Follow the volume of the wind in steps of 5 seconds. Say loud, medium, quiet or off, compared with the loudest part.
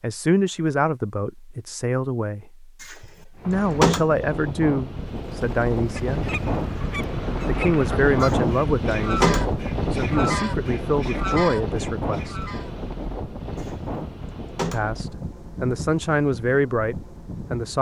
medium, loud, loud, medium.